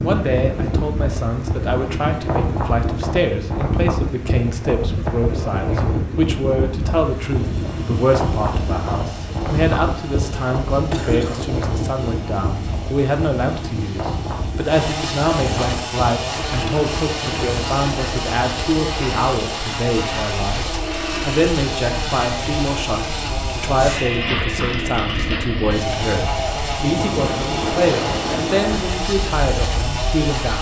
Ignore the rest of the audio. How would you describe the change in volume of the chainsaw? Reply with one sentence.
The volume of the chainsaw goes up.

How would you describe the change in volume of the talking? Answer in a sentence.
The loudness of the talking stays about the same.